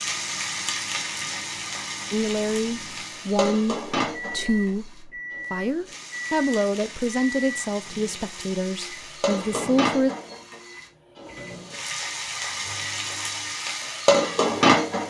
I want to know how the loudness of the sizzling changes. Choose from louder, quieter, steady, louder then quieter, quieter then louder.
quieter then louder.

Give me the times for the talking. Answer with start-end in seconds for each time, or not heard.
2.1-10.1.